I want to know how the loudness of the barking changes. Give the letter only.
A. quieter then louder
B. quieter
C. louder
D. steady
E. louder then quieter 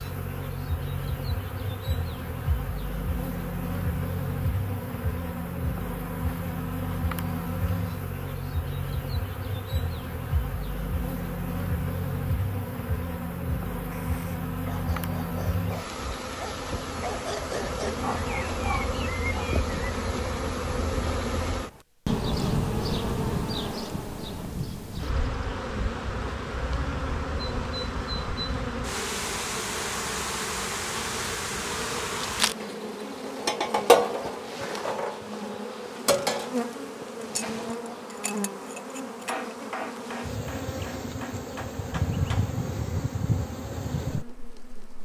C.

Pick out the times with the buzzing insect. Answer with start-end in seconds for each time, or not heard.
0.0-44.9.